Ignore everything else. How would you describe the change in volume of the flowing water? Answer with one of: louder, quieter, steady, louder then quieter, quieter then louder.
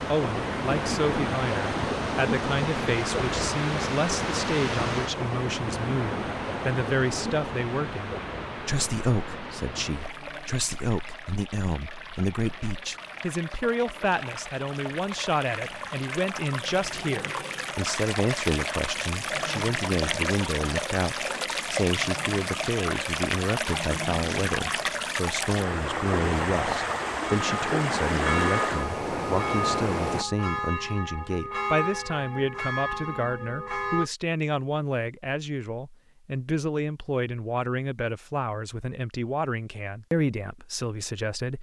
quieter then louder.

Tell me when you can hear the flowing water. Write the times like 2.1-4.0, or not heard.
0.0-30.2.